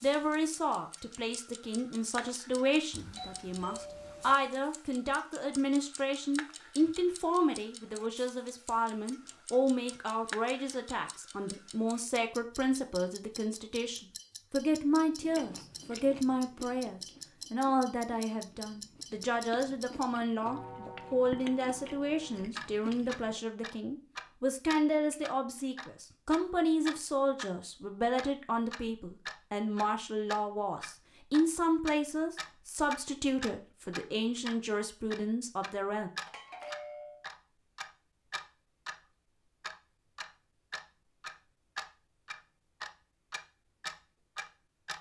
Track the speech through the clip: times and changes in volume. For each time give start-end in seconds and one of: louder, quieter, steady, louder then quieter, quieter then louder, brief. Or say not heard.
0.0-36.1 steady.